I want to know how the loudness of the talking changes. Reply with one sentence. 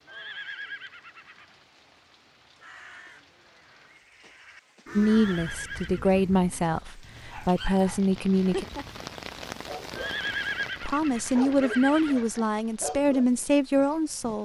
The volume of the talking stays about the same.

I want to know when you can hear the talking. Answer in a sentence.
The talking can be heard from 5.0 to 8.7 s and from 10.8 to 14.4 s.